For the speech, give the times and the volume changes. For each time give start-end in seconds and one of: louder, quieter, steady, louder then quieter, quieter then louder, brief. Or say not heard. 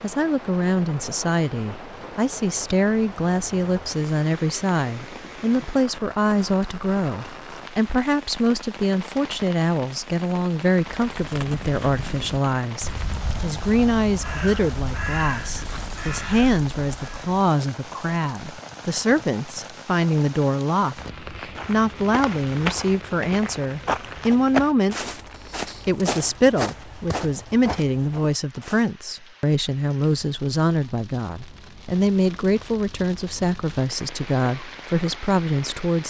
0.0-25.1 steady
25.9-36.0 steady.